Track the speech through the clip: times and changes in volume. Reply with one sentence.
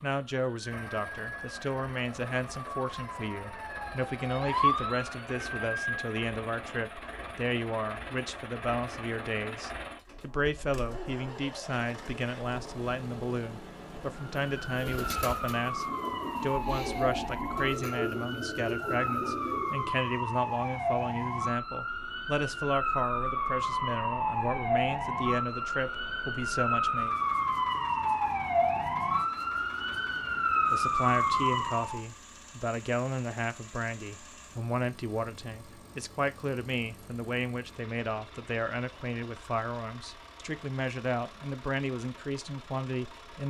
You can hear the speech from 0.0 to 27.1 s, at a steady volume; and from 30.7 to 43.4 s, at a steady volume.